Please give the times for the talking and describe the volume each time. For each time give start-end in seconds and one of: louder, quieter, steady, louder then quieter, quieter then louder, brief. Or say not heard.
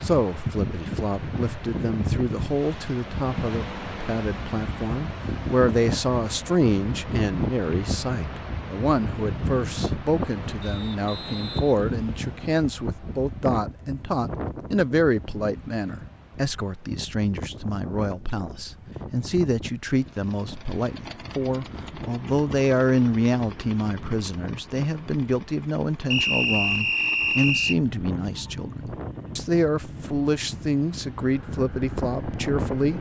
0.0-32.9 steady.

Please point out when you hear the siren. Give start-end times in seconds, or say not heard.
not heard.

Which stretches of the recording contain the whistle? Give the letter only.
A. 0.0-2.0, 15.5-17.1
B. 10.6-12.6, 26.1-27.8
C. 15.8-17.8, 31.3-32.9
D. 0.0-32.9
B.